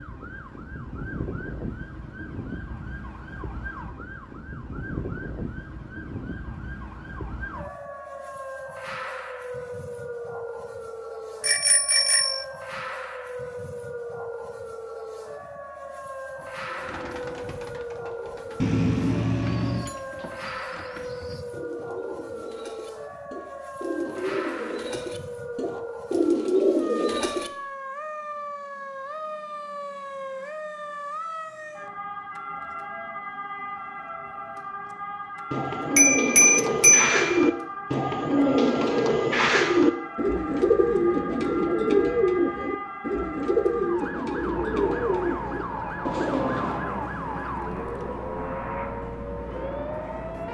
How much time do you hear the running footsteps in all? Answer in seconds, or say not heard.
not heard.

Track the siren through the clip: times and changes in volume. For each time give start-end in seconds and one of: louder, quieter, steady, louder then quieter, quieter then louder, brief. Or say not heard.
0.0-50.4 steady.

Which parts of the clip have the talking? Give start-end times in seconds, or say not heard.
not heard.